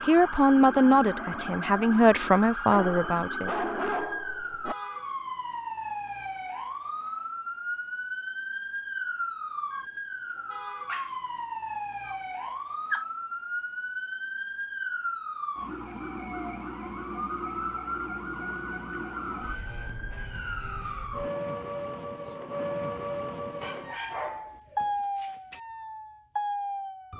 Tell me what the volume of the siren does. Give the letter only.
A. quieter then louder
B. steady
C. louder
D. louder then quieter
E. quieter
B.